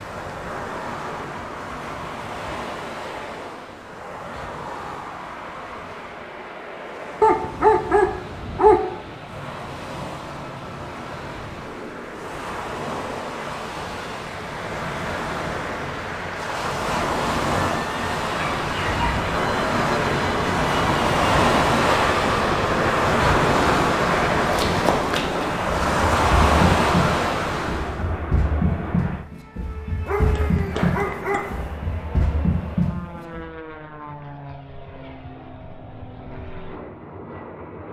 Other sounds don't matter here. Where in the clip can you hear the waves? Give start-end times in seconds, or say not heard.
0.0-28.1.